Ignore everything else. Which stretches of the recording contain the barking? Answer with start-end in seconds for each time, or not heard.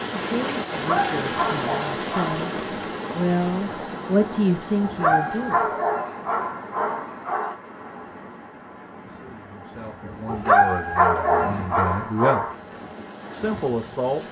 0.7-2.4, 4.8-7.5, 10.2-12.6.